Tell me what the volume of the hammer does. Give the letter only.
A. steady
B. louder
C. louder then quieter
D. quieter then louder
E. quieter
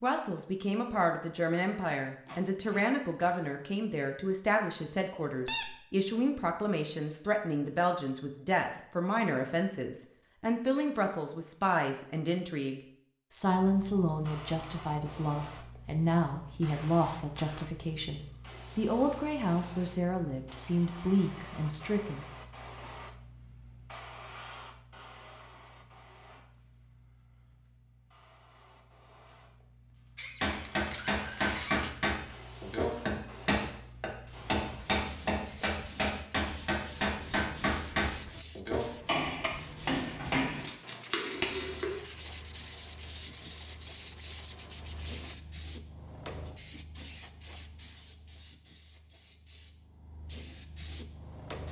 A.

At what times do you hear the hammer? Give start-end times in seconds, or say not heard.
30.4-42.0.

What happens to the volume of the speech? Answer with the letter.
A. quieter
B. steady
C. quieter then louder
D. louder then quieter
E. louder
B.